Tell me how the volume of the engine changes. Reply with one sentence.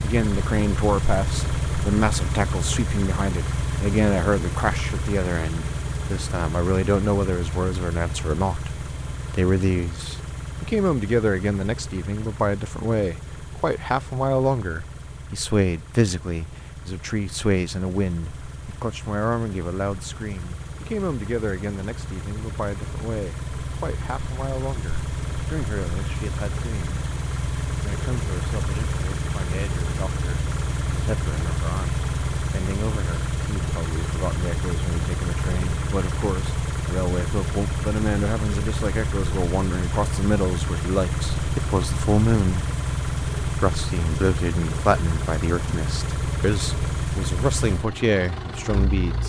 The volume of the engine goes down, then up.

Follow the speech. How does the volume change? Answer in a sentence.
The volume of the speech goes down, then up.